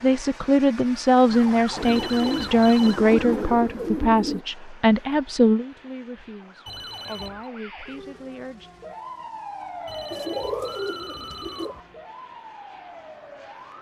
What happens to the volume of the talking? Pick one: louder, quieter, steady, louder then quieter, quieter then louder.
quieter.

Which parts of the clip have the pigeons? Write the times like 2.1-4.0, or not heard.
1.8-4.5, 10.1-11.8.